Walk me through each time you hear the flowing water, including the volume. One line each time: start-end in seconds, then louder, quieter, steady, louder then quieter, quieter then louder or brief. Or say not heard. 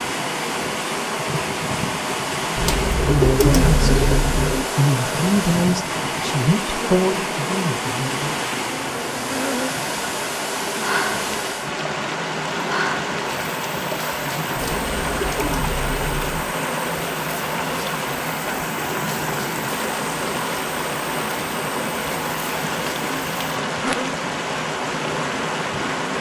0.0-26.1 steady.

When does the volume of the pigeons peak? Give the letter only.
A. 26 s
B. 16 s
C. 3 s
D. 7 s
C.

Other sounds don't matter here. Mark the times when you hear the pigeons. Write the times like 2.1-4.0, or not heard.
2.5-4.7, 14.6-16.4.